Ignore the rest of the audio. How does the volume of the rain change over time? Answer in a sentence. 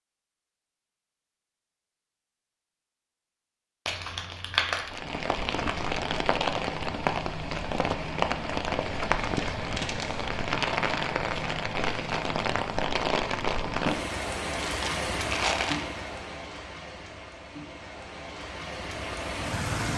The volume of the rain goes down.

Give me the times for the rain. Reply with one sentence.
The rain can be heard from 4.8 to 19.9 s.